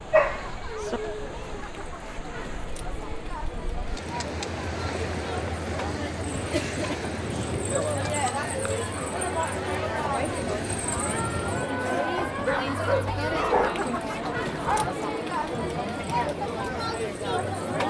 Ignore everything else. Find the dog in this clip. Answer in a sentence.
You can hear the dog from 0.1 to 1.0 s and from 12.2 to 14.9 s.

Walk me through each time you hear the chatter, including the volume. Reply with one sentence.
You can hear the chatter from 0.0 to 17.8 s, getting louder.